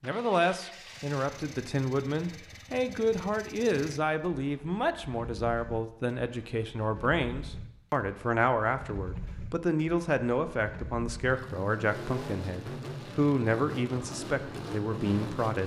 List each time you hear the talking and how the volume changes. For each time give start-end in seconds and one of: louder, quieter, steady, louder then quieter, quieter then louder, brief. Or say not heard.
0.0-15.6 steady.